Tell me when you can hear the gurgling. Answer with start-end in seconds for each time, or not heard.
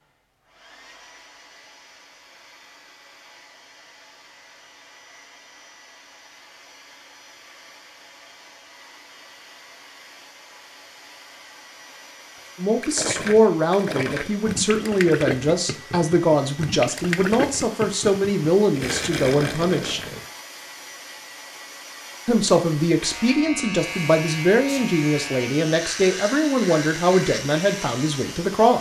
12.3-20.3.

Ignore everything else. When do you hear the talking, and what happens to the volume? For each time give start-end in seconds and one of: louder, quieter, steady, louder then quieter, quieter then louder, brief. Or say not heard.
12.6-20.0 steady
22.2-28.7 steady.